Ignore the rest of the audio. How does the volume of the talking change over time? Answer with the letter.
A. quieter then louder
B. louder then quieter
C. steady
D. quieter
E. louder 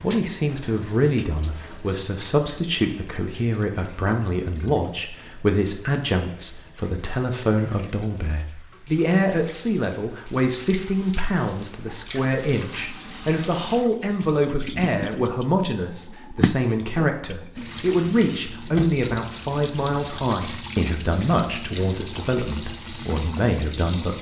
C.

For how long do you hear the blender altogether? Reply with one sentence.
You can't hear the blender here.